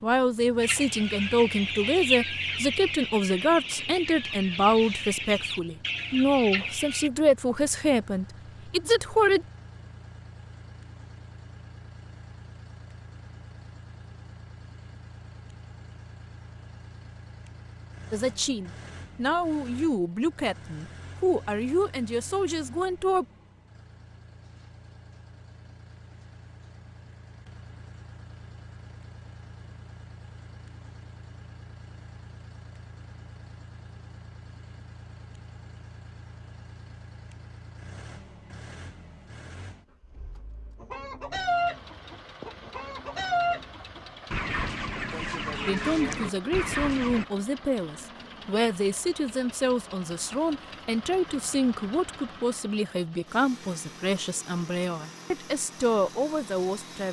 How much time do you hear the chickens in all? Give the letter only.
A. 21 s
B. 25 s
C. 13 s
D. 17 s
C.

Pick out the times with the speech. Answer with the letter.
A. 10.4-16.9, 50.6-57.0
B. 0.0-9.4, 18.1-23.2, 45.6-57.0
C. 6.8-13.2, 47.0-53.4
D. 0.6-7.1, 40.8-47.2
B.